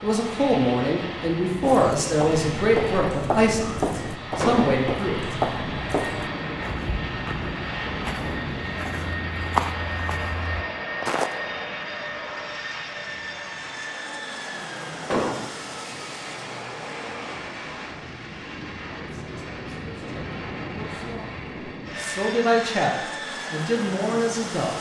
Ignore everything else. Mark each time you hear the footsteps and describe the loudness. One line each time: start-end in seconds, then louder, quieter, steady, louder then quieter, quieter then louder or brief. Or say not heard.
1.6-11.3 quieter then louder.